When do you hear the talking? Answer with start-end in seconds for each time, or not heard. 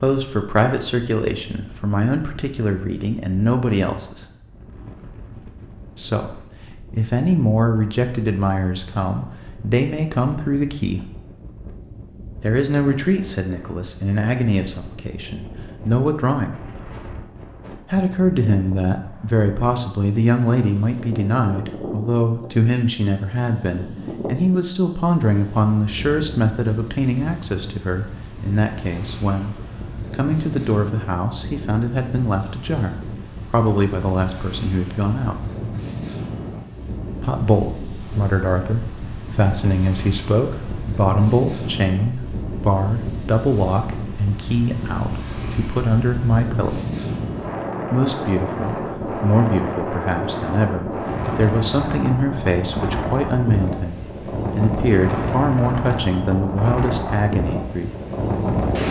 0.0-4.2, 6.0-11.1, 12.4-16.6, 17.9-35.4, 37.2-46.8, 47.9-57.9.